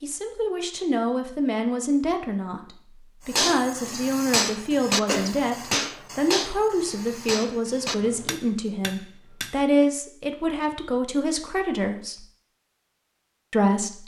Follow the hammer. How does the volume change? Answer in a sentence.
The loudness of the hammer goes down.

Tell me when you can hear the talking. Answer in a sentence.
You can hear the talking from 0.0 to 12.2 s and from 13.5 to 14.0 s.